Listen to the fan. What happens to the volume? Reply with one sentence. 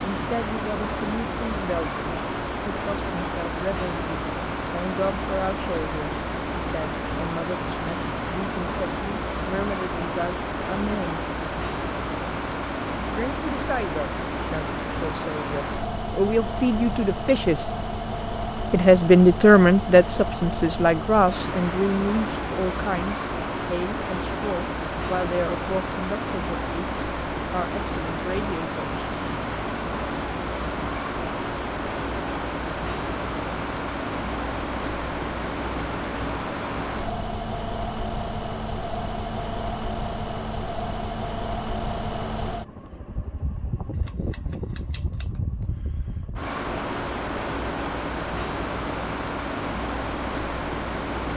The loudness of the fan stays about the same.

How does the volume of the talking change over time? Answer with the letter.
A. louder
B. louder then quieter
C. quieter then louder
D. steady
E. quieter
B.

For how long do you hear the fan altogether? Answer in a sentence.
You can hear the fan for 51 seconds altogether.